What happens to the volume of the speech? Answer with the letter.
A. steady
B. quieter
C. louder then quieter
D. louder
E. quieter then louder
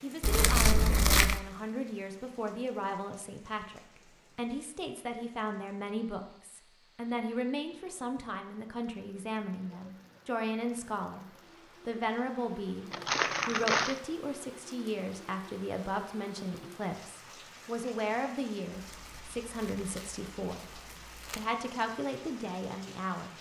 A.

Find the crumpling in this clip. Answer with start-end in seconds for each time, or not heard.
0.2-1.4, 12.9-14.0, 18.8-21.4.